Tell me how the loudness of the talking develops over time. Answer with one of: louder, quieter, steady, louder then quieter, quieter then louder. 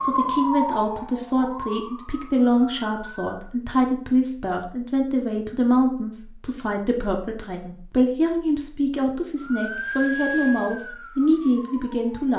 steady.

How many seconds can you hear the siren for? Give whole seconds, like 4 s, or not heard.
6 s.